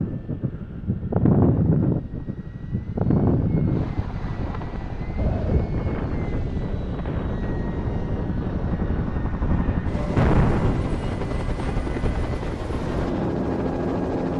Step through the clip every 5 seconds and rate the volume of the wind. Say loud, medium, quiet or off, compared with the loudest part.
loud, medium, medium.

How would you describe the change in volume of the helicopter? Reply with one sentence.
The volume of the helicopter goes up.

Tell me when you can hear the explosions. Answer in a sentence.
The explosions can be heard from 10.2 to 11.0 s.